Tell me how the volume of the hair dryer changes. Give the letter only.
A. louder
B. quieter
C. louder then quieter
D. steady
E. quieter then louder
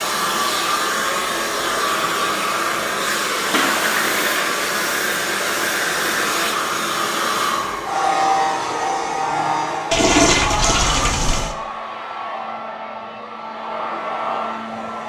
B.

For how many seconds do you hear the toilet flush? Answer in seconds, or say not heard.
3 s.